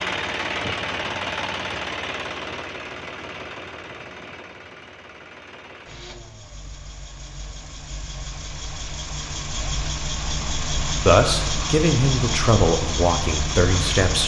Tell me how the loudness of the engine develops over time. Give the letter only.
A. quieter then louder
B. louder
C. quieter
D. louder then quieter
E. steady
A.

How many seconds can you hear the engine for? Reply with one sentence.
You can hear the engine for 14 seconds altogether.